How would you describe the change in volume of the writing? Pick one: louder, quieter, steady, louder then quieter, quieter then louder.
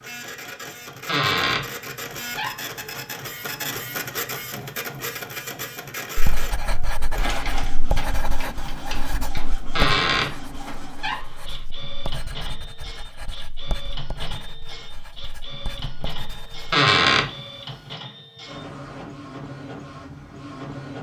quieter.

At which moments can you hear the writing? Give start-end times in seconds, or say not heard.
6.2-16.8.